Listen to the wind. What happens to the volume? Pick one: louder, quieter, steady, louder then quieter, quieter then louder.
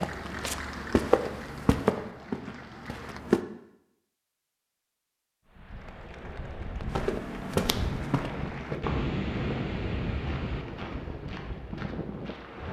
louder then quieter.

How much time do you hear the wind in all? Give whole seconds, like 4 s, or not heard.
7 s.